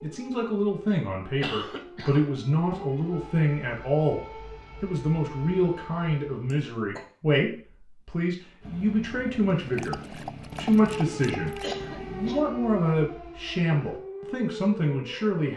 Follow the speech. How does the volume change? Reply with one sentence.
The volume of the speech stays about the same.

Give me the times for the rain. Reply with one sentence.
You can't hear the rain here.